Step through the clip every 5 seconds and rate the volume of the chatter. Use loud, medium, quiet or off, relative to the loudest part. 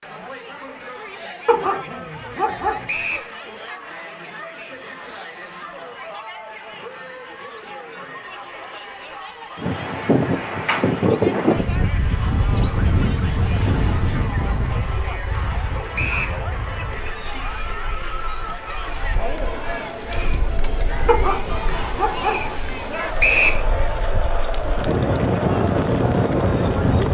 medium, medium, medium, loud, loud, loud.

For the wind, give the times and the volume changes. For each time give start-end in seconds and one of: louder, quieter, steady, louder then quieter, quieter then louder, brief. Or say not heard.
9.6-27.0 quieter then louder.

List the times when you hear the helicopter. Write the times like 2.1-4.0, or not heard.
not heard.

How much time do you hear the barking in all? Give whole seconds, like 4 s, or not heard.
3 s.